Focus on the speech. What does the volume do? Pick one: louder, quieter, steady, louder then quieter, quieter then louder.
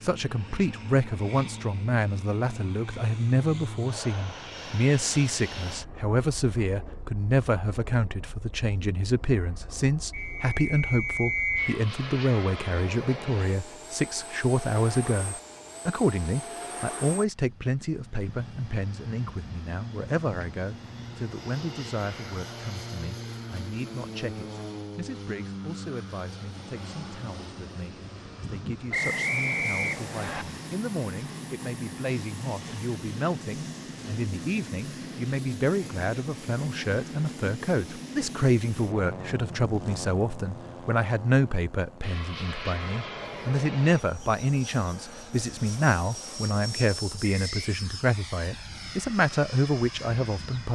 quieter then louder.